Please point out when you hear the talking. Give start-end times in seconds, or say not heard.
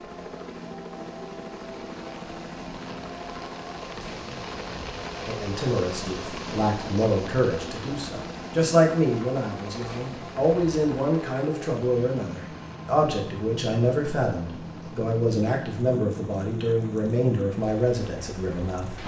5.2-19.0.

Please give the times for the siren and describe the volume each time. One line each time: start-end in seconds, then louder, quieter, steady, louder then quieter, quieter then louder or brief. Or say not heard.
not heard.